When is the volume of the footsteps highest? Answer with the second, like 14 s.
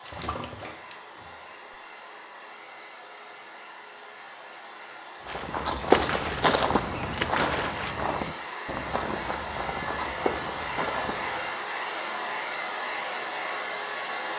6 s.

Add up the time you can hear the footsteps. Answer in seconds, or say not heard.
6 s.